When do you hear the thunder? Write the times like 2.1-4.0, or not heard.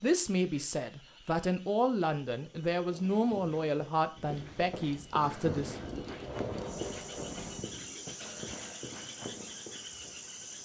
4.2-7.7.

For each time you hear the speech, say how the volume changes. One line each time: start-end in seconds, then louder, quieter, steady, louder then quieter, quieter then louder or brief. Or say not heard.
0.0-5.8 steady.